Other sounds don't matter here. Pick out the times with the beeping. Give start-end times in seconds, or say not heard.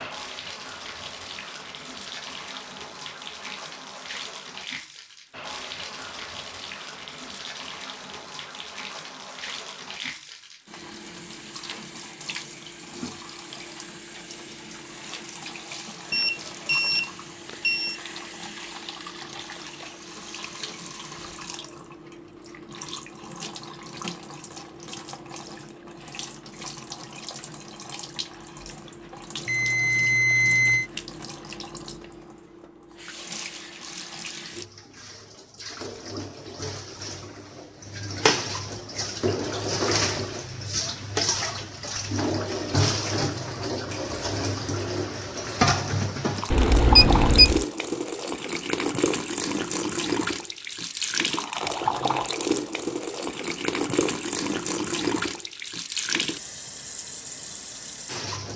16.1-18.0, 29.4-30.9, 46.5-47.6.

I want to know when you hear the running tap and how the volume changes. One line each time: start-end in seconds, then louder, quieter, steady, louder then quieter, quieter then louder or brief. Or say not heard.
0.0-58.5 louder.